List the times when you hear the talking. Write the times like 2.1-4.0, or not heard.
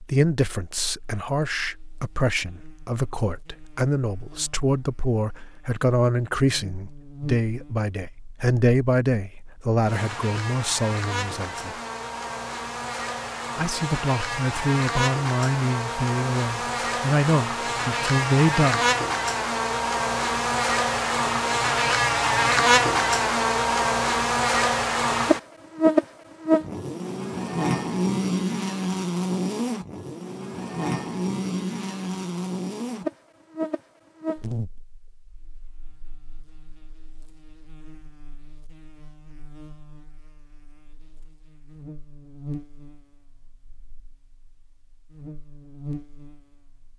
0.1-11.8, 13.6-18.9.